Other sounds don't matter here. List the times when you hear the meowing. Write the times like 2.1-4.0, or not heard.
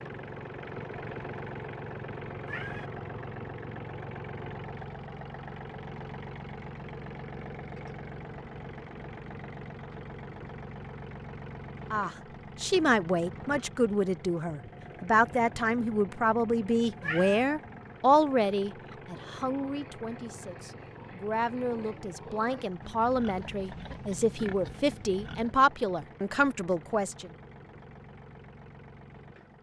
2.5-2.9, 17.0-17.4.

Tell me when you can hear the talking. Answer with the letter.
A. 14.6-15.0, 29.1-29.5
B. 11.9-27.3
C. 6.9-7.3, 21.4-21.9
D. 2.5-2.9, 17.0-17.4
B.